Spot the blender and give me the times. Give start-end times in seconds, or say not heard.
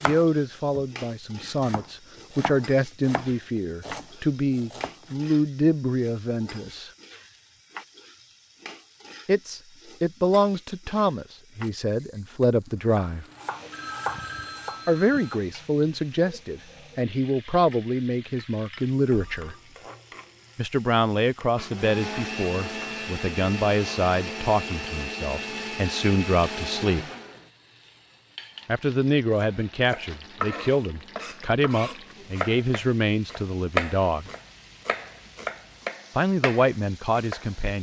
21.6-27.5.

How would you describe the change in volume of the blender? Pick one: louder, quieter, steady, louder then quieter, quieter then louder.
steady.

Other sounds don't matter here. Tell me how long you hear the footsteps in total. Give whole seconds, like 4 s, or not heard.
not heard.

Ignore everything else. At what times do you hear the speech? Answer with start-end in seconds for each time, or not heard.
0.0-6.9, 9.2-13.2, 14.8-19.6, 20.6-27.1, 28.6-34.3, 36.1-37.7.